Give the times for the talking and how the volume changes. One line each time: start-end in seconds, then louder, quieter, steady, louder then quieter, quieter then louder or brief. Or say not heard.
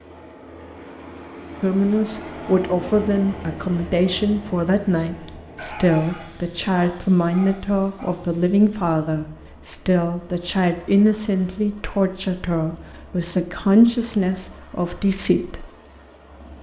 1.6-15.7 steady.